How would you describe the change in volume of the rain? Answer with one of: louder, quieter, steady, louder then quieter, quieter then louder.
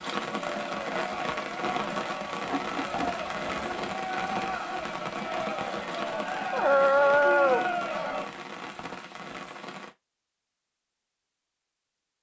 quieter.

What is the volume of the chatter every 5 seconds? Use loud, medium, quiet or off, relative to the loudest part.
loud, loud, off.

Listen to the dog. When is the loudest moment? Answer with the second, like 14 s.
7 s.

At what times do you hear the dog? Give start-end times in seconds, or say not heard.
2.5-4.0, 6.5-7.7.